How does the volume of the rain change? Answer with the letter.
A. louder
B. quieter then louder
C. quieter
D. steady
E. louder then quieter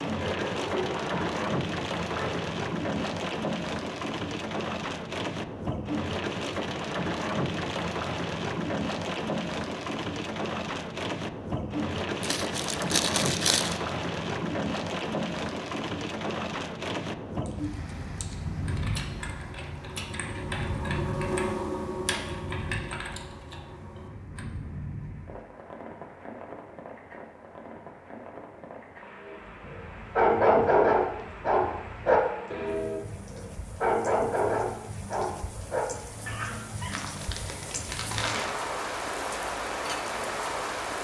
B.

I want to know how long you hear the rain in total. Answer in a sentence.
The rain can be heard for 41 seconds in total.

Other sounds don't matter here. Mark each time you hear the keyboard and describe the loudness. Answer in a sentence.
The keyboard can be heard from 17.4 to 24.4 s, getting louder then quieter.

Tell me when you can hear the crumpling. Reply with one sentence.
You can hear the crumpling from 12.2 to 13.8 s and from 36.9 to 38.5 s.